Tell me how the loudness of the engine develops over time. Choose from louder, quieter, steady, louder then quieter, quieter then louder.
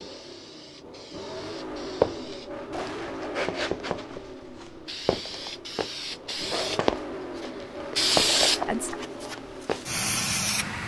quieter then louder.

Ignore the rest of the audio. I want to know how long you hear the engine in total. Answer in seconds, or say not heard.
11 s.